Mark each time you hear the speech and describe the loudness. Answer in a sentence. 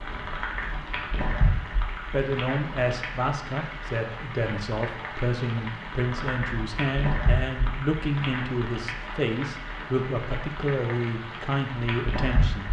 The speech can be heard from 2.1 to 12.6 s, at a steady volume.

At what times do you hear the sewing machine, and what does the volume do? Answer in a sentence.
The sewing machine can't be heard in this clip.